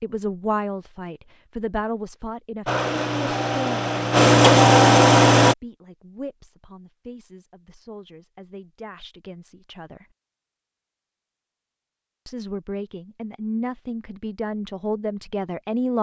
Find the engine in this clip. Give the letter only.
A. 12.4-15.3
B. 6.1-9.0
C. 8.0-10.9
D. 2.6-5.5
D.